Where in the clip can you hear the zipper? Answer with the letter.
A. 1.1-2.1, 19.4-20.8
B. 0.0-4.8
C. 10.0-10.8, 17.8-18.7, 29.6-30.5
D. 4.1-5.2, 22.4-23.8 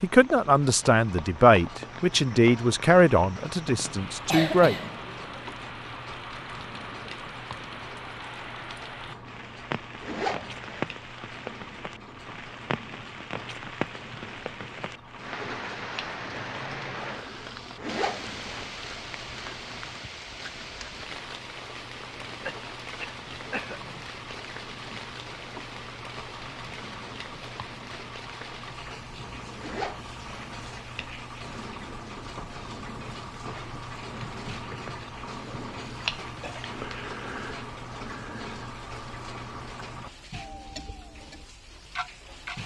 C.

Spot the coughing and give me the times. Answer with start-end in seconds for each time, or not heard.
4.1-5.2, 22.4-23.8.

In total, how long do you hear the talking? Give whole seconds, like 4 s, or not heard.
5 s.